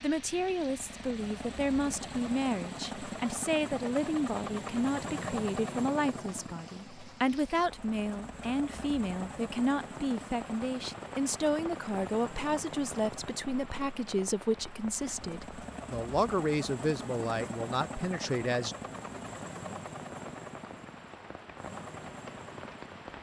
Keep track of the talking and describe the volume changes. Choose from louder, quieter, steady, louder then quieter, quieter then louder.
steady.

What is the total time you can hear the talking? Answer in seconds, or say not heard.
19 s.